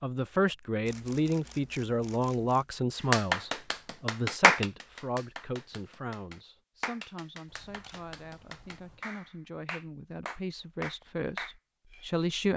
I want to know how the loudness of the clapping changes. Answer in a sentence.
The loudness of the clapping goes down, then up.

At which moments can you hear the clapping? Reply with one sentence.
The clapping can be heard from 3.1 to 12.1 s.